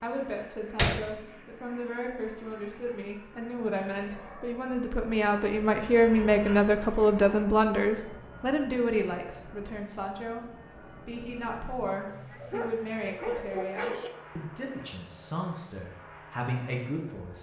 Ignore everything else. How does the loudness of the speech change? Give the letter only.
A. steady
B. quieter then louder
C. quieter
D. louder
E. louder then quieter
E.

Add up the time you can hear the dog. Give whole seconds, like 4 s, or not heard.
2 s.